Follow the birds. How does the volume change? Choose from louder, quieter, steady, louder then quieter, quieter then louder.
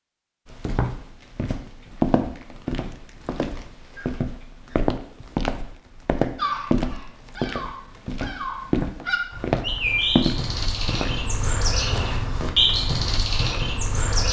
louder.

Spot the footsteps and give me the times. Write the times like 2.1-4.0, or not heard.
0.5-11.2.